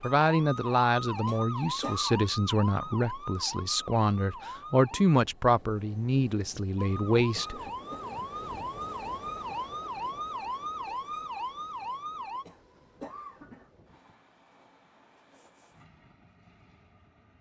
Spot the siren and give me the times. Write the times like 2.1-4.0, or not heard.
0.0-5.2, 6.8-12.4.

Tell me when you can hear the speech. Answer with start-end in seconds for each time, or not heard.
0.0-7.6.